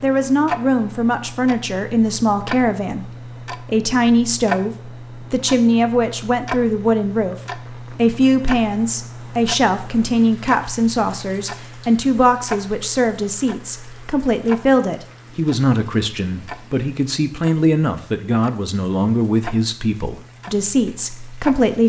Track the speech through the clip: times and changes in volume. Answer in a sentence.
You can hear the speech from 0.0 to 21.8 s, at a steady volume.